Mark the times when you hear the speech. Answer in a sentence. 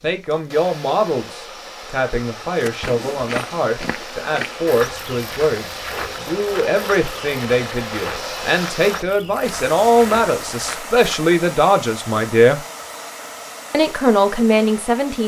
The speech can be heard from 0.0 to 12.6 s and from 13.7 to 15.2 s.